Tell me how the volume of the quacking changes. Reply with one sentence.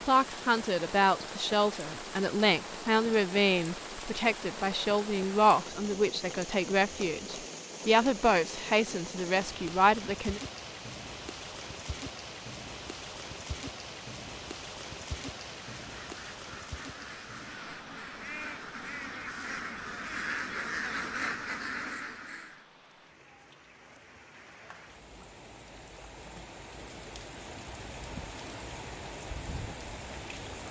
The volume of the quacking goes up.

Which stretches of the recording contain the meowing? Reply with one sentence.
You can't hear the meowing here.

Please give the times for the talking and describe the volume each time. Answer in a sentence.
The talking can be heard from 0.1 to 10.4 s, at a steady volume.